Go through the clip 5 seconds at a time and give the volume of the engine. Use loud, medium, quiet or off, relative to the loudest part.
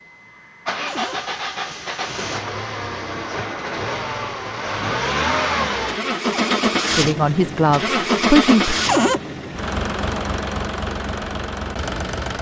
medium, loud, medium.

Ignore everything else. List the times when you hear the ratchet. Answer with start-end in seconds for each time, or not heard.
not heard.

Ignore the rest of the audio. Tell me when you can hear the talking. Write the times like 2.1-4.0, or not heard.
7.0-8.8.